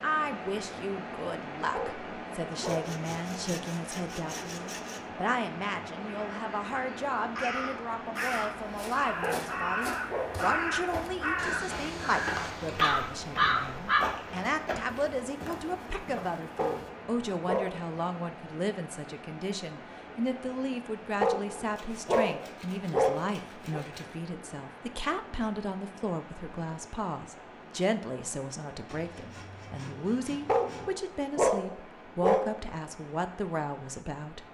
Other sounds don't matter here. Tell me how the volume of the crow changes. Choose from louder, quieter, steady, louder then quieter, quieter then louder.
louder.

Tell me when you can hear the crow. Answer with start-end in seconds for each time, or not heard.
6.0-14.0.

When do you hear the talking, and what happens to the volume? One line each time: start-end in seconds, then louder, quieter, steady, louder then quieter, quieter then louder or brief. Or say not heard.
0.0-34.4 steady.